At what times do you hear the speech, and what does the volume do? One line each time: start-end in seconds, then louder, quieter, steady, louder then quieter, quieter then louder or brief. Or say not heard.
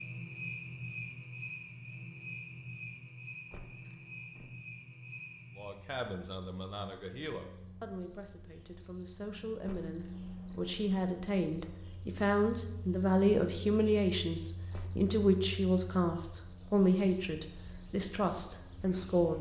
5.5-19.3 louder.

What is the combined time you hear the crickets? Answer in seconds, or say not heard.
19 s.